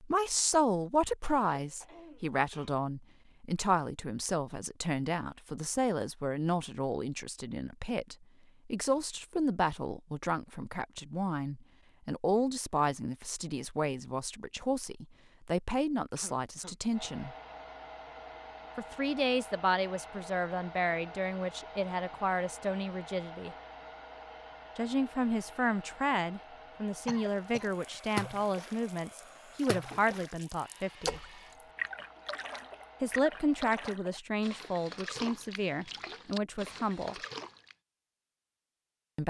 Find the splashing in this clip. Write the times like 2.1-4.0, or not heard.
27.2-37.8.